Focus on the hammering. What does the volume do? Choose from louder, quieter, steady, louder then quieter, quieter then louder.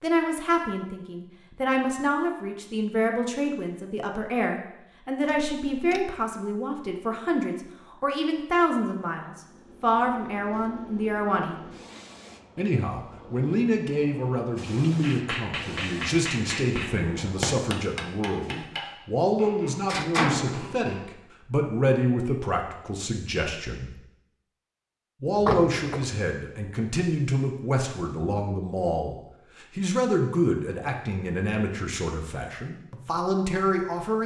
quieter.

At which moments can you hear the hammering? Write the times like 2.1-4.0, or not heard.
15.0-21.1.